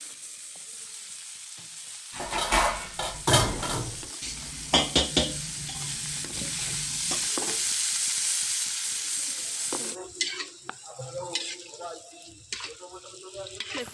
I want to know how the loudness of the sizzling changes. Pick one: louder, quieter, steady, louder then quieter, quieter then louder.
louder then quieter.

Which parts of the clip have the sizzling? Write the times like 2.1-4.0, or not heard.
0.0-13.8.